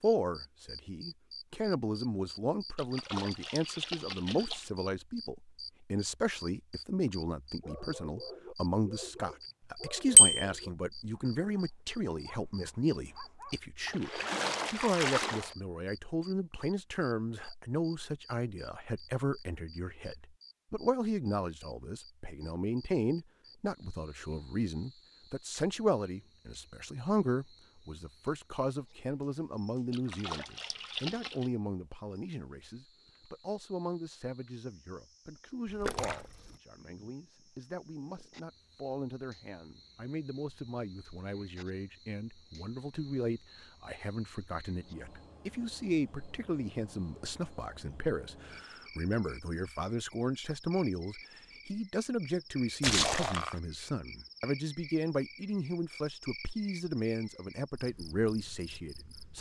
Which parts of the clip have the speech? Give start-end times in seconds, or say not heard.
0.0-59.3.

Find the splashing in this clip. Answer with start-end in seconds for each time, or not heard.
2.8-4.7, 13.8-15.6, 29.9-31.5, 35.6-36.5, 52.8-53.5.